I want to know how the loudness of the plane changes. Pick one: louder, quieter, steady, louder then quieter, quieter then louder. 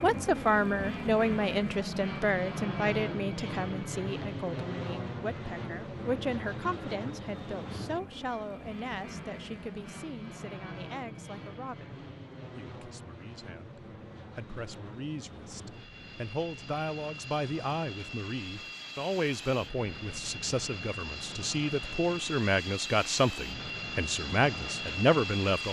quieter then louder.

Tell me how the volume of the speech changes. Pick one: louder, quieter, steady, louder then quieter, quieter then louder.
quieter then louder.